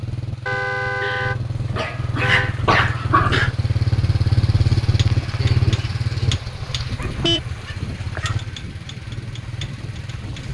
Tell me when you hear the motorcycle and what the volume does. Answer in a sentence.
The motorcycle can be heard from 0.0 to 10.4 s, getting louder then quieter.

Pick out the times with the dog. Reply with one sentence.
The dog can be heard from 1.0 to 3.5 s and from 7.0 to 8.4 s.